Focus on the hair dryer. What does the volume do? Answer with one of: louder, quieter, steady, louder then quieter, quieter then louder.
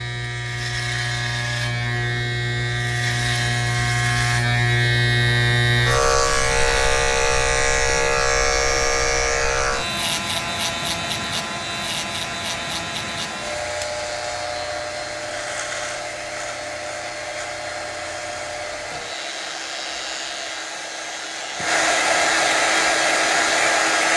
louder.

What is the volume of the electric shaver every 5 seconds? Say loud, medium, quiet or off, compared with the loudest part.
loud, loud, medium, quiet, quiet.